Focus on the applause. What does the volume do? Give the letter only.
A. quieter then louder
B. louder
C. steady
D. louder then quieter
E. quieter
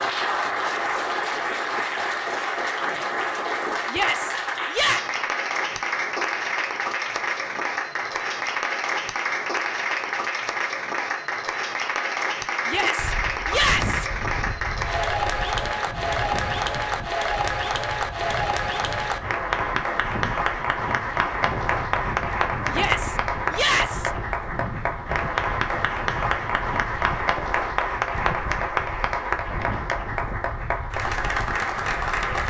C.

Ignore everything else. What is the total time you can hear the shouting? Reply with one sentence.
The shouting can be heard for 4 seconds in total.